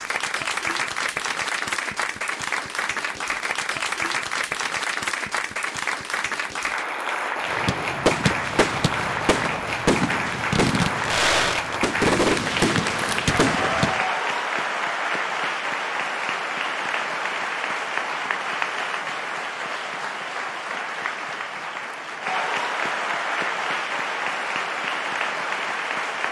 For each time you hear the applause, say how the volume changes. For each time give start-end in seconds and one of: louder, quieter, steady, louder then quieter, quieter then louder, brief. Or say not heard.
0.0-26.2 steady.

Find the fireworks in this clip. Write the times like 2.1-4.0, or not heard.
7.4-14.1.